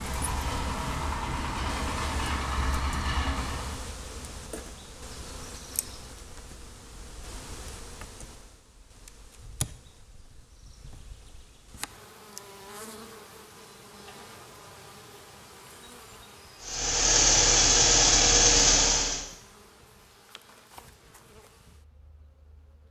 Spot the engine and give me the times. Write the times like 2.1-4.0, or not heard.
0.0-3.9, 16.6-19.2.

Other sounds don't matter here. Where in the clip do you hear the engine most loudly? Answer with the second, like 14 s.
18 s.